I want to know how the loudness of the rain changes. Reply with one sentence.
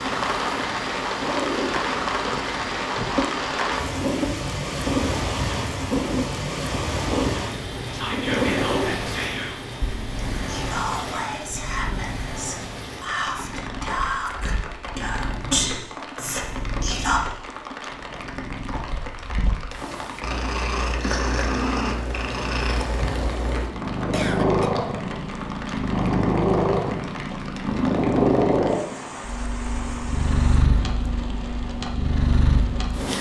The loudness of the rain goes down.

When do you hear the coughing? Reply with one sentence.
You can hear the coughing from 11.1 to 12.2 s and from 24.1 to 24.7 s.